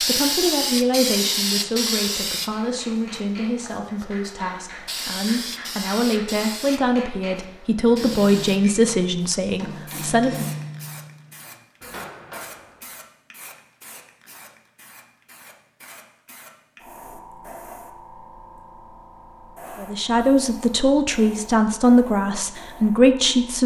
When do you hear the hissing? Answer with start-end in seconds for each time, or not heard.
0.0-23.6.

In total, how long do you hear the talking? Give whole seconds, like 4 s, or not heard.
14 s.